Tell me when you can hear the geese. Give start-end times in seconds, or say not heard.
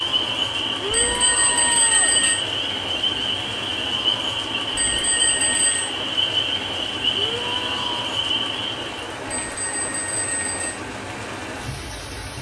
not heard.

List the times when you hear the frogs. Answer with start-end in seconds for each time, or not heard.
0.0-9.0.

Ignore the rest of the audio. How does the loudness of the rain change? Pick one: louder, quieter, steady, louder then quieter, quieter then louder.
steady.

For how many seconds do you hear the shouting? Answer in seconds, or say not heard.
2 s.